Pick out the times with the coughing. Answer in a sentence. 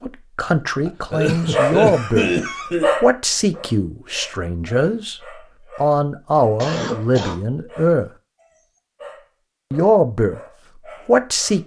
The coughing can be heard from 0.8 to 2.9 s and from 6.6 to 7.4 s.